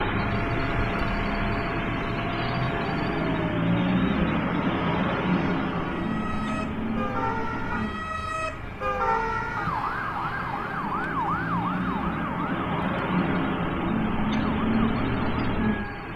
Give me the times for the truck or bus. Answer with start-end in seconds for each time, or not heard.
0.0-16.1.